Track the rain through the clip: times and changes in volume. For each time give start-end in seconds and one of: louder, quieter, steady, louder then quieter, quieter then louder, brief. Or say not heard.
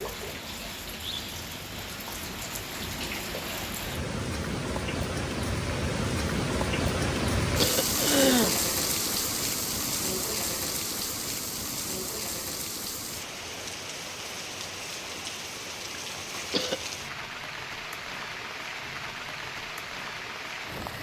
0.0-20.9 louder then quieter.